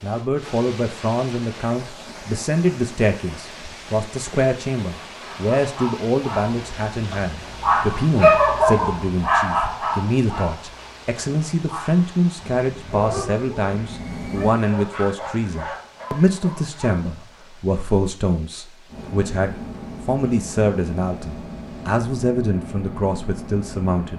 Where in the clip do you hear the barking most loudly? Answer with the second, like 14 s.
8 s.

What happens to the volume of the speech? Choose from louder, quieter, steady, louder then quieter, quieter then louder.
steady.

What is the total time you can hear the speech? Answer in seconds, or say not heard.
24 s.